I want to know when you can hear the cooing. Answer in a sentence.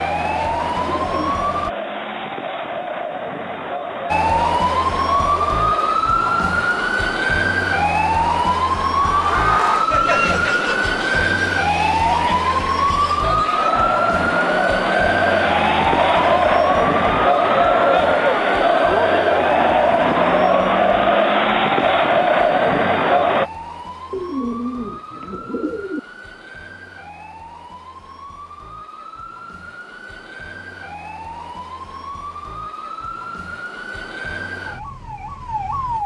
The cooing can be heard from 0.2 to 1.6 s and from 24.1 to 26.0 s.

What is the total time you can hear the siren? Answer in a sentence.
You can hear the siren for 34 seconds altogether.